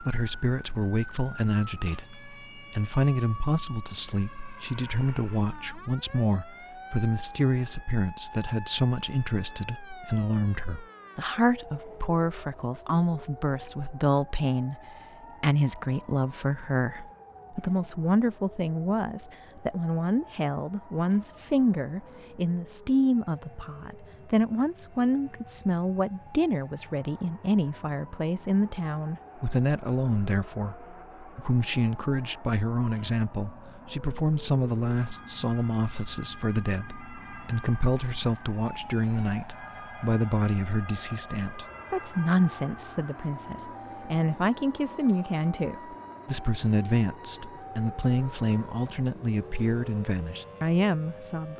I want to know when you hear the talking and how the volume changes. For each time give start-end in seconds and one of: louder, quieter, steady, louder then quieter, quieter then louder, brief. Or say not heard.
0.0-51.5 steady.